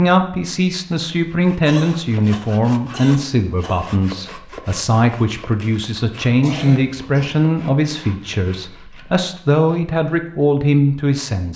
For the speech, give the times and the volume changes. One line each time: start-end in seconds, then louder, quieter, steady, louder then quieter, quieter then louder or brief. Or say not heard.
0.0-11.5 steady.